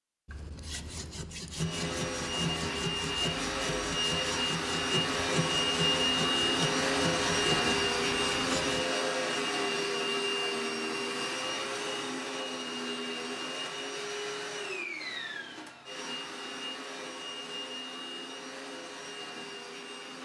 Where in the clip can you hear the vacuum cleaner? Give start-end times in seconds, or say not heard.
1.6-20.1.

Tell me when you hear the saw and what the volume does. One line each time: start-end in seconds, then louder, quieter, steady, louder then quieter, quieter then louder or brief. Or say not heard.
0.2-8.8 steady.